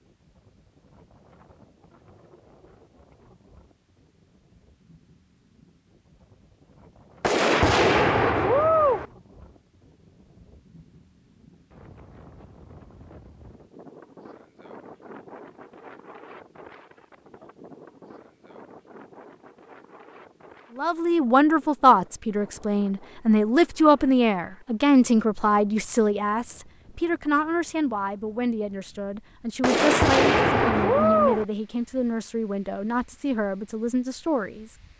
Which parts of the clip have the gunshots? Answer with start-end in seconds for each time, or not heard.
7.2-9.1, 29.6-31.4.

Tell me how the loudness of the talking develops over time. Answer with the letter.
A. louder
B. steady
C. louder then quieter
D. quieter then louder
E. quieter
E.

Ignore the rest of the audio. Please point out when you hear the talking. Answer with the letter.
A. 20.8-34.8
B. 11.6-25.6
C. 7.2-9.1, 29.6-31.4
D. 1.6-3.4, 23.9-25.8
A.